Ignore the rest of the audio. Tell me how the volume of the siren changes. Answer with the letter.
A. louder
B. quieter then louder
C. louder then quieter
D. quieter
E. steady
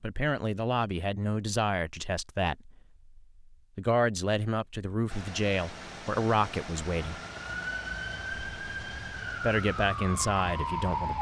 E.